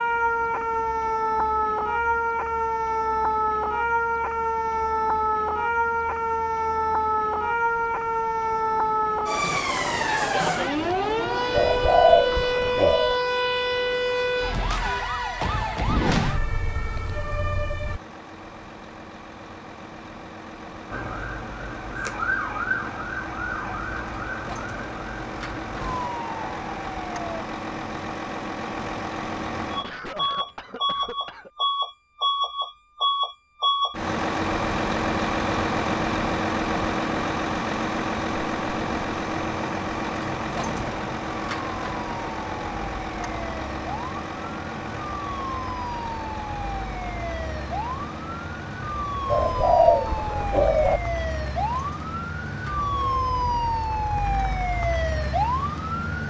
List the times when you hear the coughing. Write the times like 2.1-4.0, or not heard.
29.8-31.5.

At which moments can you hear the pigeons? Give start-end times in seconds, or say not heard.
11.6-13.2, 49.3-51.0.